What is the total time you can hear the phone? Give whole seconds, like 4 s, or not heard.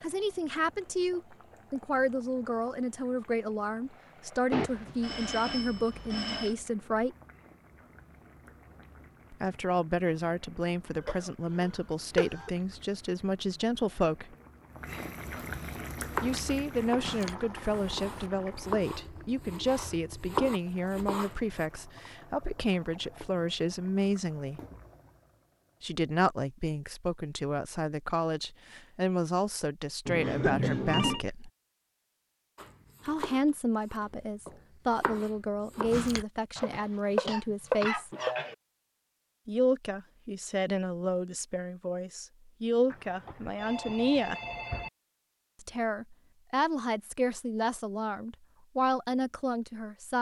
5 s.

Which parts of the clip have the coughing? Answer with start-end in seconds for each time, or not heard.
11.0-12.5, 30.2-30.8, 36.5-38.5.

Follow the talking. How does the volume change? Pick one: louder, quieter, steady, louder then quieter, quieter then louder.
steady.